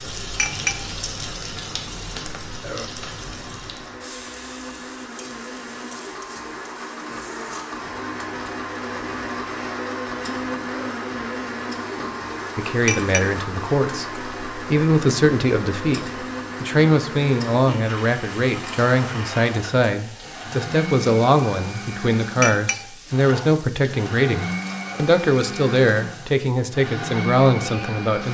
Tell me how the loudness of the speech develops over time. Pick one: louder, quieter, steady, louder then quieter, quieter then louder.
steady.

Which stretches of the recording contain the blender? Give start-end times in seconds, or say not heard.
0.0-28.2.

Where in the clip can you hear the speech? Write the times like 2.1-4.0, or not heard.
12.6-28.2.